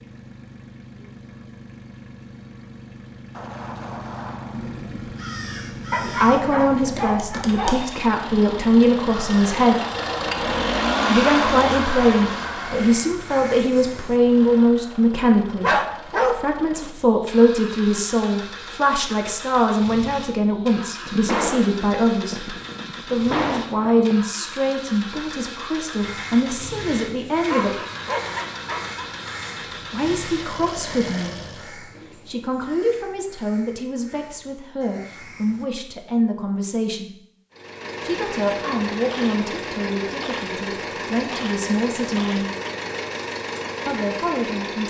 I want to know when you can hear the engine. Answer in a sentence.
You can hear the engine from 0.0 to 31.8 s and from 37.5 to 44.8 s.